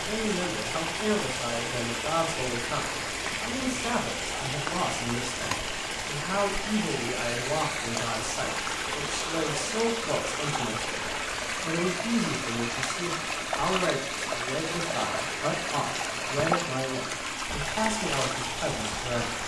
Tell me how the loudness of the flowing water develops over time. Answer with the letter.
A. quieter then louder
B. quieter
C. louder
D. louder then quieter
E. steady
E.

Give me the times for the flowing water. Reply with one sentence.
You can hear the flowing water from 0.0 to 19.4 s.